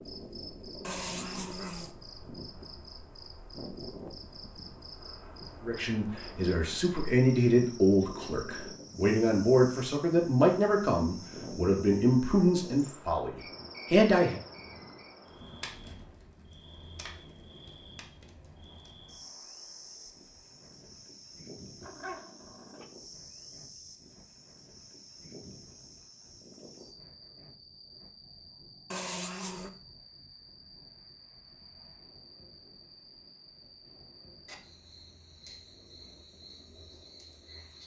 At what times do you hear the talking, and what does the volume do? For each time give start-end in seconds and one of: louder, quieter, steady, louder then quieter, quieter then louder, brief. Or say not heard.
5.7-14.4 steady.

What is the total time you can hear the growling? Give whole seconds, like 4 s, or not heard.
3 s.